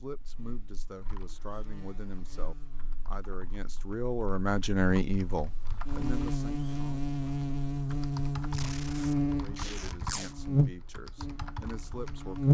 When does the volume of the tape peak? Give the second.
10 s.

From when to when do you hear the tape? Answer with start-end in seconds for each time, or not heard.
8.5-10.3.